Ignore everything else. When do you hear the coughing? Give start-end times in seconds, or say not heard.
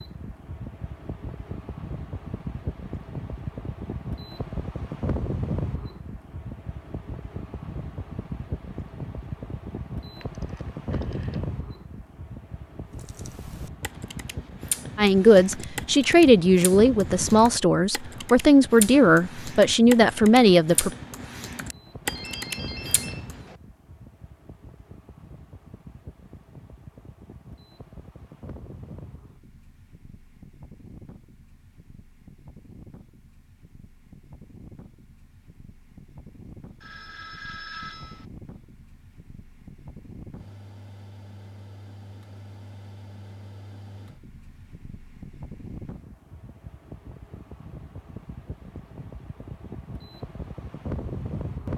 not heard.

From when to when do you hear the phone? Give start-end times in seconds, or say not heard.
10.2-11.4, 22.1-23.6, 36.8-38.2.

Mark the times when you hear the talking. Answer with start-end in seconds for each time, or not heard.
14.9-20.9.